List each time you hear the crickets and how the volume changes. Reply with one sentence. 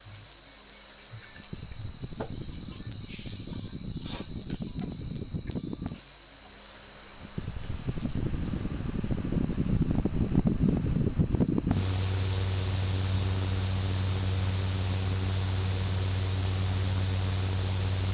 You can hear the crickets from 0.0 to 18.0 s, getting quieter.